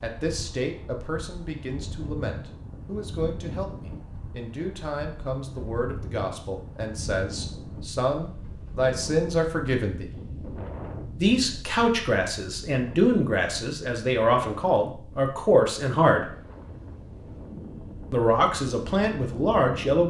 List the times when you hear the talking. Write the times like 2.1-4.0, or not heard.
0.0-10.1, 11.2-16.3, 18.1-20.0.